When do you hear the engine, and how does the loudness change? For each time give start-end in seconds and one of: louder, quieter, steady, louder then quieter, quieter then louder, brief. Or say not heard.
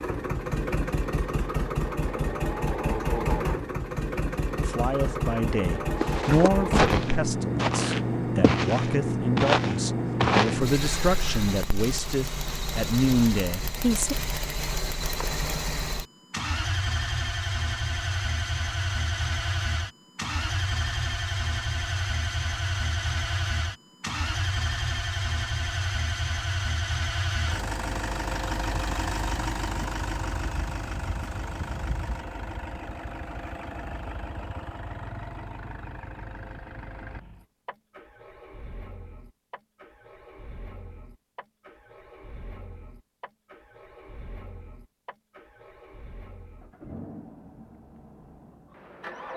0.0-49.3 quieter.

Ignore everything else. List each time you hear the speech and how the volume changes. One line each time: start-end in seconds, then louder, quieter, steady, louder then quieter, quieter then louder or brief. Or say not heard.
4.7-14.2 quieter then louder.